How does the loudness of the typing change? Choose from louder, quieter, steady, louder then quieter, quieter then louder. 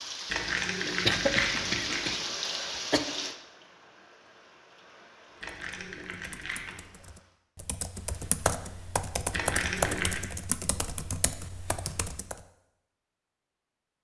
louder then quieter.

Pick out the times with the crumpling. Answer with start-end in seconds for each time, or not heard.
0.2-2.1, 5.4-6.8, 9.3-10.2.